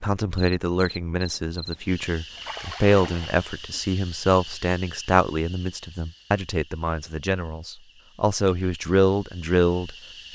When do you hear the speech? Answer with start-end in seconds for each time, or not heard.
0.0-10.3.